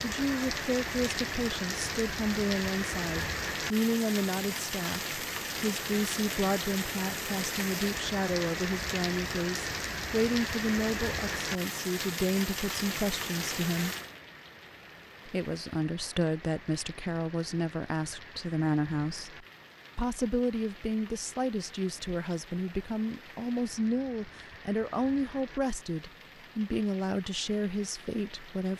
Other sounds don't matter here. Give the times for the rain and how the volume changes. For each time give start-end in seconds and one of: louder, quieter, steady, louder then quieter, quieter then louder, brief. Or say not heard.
0.0-28.7 quieter.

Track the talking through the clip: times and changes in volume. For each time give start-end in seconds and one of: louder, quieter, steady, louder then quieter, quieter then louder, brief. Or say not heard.
0.0-13.9 steady
15.2-28.7 steady.